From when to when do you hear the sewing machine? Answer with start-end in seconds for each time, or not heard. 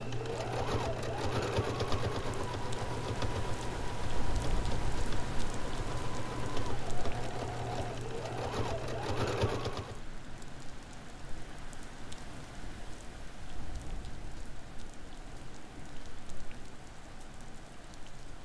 0.0-10.0.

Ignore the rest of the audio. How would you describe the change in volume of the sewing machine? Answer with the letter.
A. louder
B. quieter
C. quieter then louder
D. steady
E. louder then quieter
C.